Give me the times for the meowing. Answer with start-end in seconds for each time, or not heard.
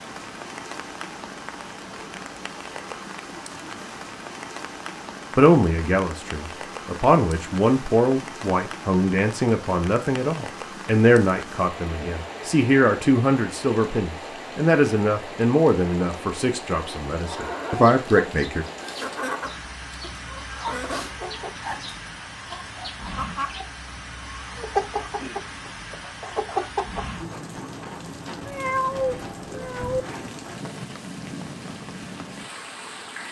28.4-30.1.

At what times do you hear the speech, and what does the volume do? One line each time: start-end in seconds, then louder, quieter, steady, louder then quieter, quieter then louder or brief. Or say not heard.
5.3-18.6 steady.